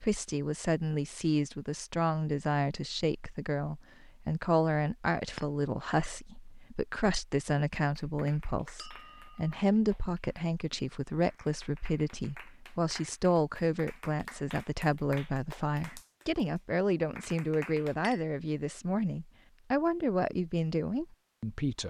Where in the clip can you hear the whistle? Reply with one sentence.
You can't hear the whistle here.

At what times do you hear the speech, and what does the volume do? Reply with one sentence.
You can hear the speech from 0.0 to 21.8 s, at a steady volume.